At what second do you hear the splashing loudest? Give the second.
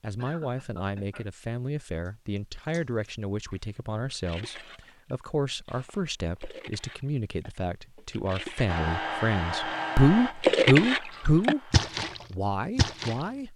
11 s.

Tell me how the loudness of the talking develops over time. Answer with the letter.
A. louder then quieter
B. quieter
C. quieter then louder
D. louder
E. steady
D.